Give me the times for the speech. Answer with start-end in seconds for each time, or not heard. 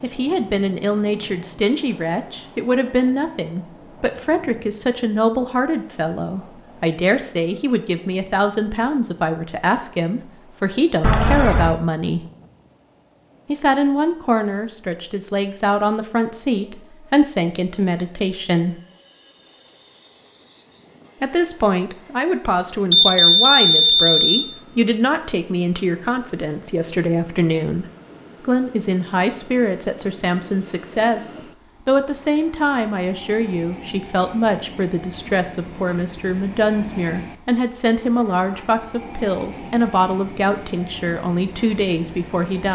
0.0-12.2, 13.4-18.8, 21.2-42.7.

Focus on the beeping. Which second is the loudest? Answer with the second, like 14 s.
23 s.